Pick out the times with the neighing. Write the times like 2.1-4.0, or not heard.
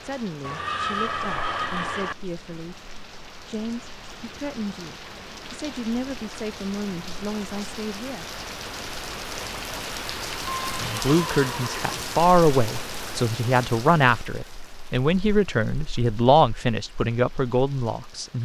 0.4-2.1, 10.5-12.2.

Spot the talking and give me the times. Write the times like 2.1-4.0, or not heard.
0.0-2.8, 3.5-8.2, 10.8-18.4.